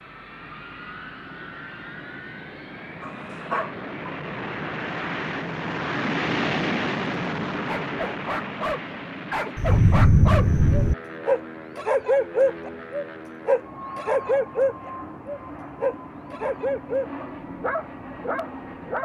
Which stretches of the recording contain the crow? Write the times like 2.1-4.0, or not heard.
not heard.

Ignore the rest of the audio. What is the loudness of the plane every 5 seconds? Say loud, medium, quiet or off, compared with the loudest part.
medium, loud, medium, medium.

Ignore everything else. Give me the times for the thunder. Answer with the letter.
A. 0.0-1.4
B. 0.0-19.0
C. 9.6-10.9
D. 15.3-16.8
C.